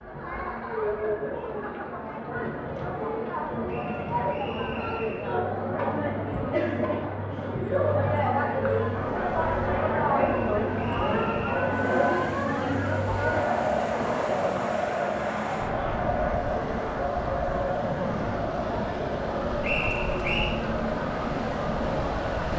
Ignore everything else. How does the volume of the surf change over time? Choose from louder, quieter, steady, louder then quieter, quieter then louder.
louder.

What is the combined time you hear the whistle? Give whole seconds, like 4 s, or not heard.
4 s.